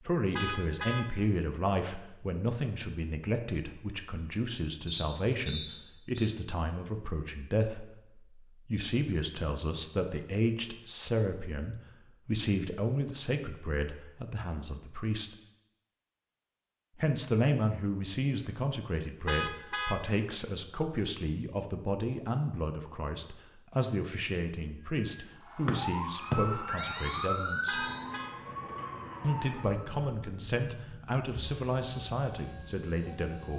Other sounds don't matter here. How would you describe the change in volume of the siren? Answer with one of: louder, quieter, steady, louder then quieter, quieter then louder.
quieter.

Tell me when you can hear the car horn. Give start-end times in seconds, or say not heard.
0.3-1.1, 19.2-20.0, 27.6-28.4.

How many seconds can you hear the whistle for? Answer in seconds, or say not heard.
4 s.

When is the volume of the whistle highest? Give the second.
26 s.